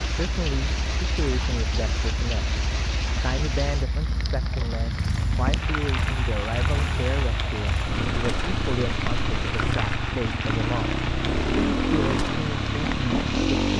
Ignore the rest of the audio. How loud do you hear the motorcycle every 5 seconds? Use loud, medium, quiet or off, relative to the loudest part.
quiet, medium, loud.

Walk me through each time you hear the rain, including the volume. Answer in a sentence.
The rain can be heard from 0.0 to 13.7 s, at a steady volume.